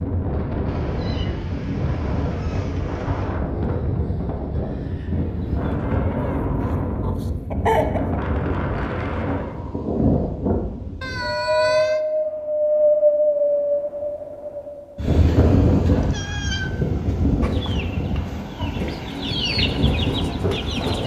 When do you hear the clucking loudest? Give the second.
8 s.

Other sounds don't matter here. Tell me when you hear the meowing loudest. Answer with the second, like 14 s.
12 s.